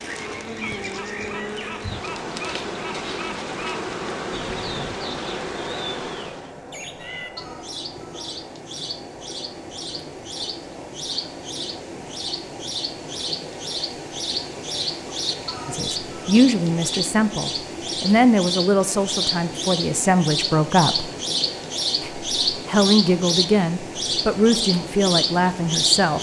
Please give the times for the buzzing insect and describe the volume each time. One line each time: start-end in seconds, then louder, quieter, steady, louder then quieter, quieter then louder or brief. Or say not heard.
0.0-6.6 steady.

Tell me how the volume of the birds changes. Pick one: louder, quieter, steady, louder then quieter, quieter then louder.
louder.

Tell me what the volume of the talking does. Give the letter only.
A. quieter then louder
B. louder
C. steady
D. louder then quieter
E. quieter
C.